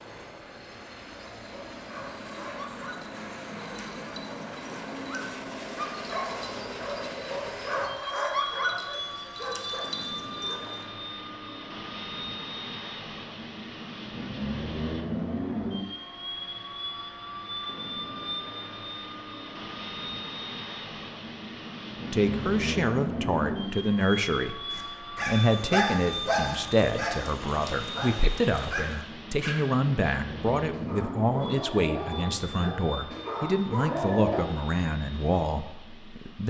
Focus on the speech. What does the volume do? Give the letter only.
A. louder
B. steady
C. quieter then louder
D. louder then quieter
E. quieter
B.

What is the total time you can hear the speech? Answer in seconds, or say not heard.
14 s.